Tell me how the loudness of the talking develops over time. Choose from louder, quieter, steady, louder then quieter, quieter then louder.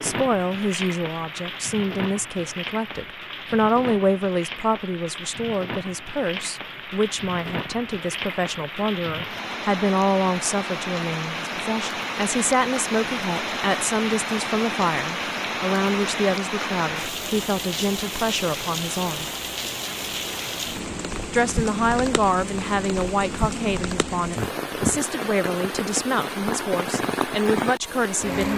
steady.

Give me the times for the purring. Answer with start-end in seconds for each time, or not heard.
not heard.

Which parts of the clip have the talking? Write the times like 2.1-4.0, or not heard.
0.0-19.2, 21.3-28.5.